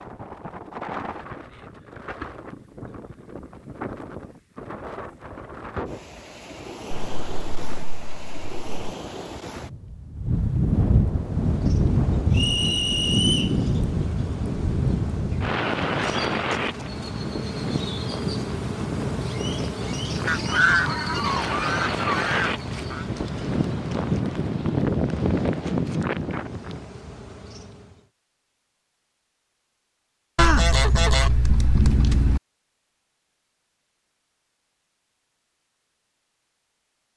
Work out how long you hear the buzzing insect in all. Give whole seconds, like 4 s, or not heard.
17 s.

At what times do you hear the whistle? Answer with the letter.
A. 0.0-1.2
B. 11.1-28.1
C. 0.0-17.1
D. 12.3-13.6
D.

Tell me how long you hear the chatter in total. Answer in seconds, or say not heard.
not heard.